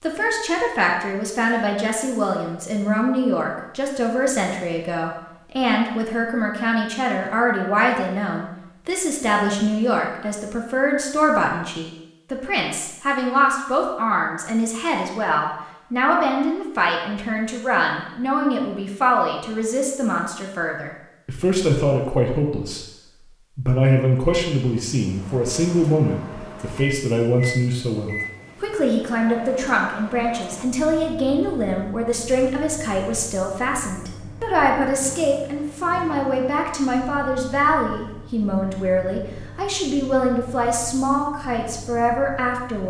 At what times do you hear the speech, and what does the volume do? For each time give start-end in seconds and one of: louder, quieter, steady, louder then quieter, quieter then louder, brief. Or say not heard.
0.0-42.8 steady.